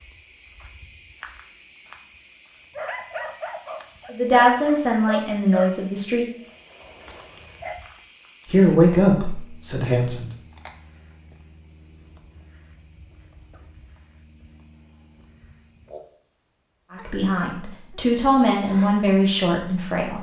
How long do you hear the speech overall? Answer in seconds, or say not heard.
7 s.